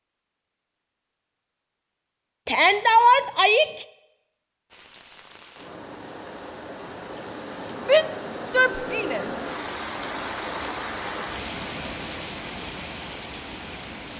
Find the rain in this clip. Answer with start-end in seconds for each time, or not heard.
4.7-14.1.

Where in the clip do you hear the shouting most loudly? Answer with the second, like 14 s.
3 s.